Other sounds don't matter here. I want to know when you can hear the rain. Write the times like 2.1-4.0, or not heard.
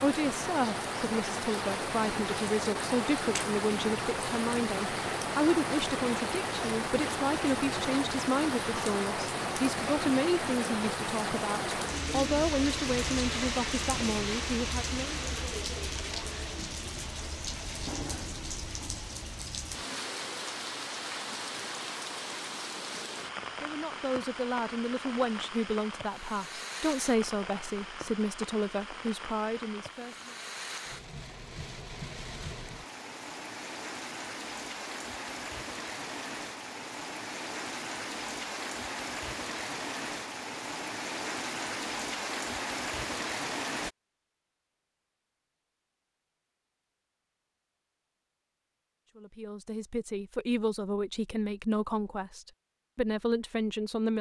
0.0-43.9.